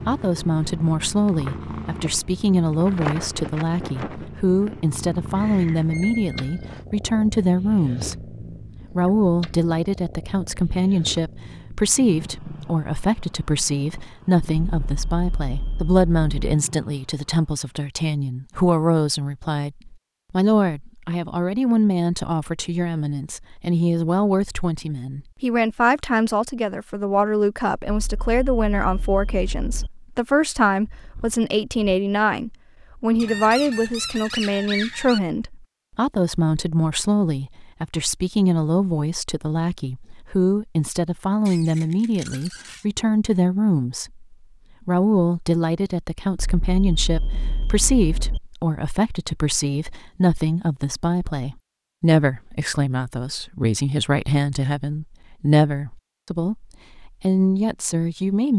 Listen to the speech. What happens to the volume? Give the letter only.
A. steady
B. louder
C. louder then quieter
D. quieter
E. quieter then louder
A.